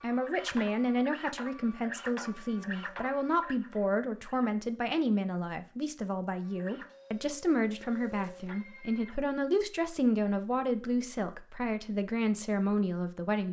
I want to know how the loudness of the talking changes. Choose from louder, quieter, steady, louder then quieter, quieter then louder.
steady.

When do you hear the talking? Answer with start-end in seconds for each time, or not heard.
0.0-13.4.